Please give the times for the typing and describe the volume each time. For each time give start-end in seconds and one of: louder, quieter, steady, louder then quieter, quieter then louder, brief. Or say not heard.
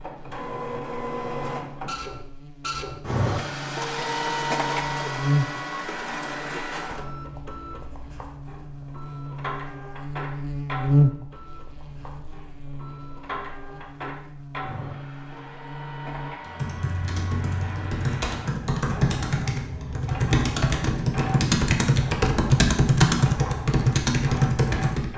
16.4-25.1 louder.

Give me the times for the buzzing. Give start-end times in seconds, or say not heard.
0.0-16.4.